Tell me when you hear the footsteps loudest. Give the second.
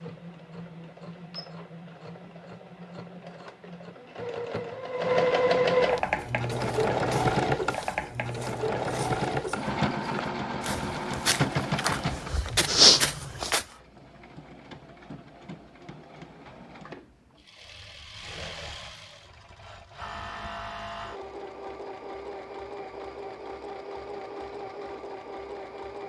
13 s.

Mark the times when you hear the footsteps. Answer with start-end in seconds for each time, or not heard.
6.0-13.7.